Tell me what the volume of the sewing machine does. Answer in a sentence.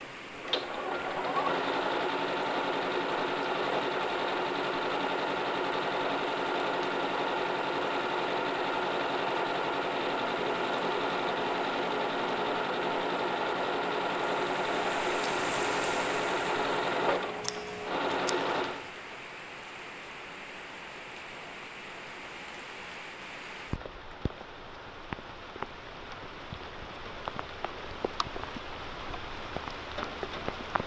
The volume of the sewing machine goes down.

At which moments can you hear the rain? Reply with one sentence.
The rain can be heard from 0.0 to 30.8 s.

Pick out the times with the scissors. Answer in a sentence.
You can hear the scissors from 17.4 to 18.6 s.